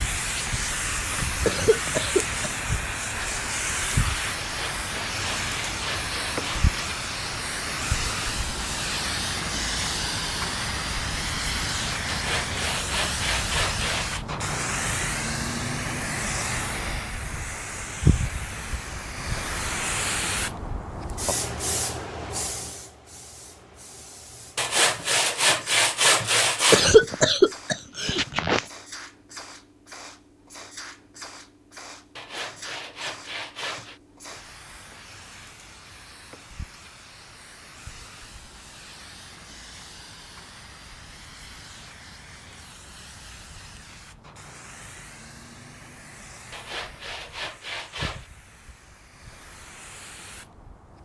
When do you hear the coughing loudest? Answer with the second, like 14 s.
27 s.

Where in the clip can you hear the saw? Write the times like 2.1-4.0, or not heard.
4.3-6.8, 12.1-14.2, 24.6-26.9, 32.1-34.0, 46.5-48.3.